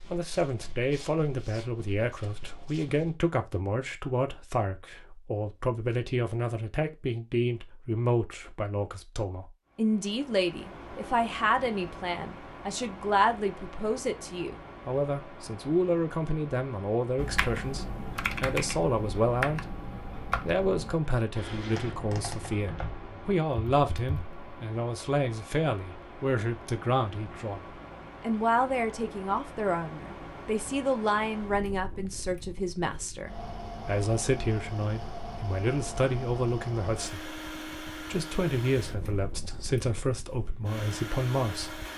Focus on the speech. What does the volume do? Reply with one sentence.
The volume of the speech stays about the same.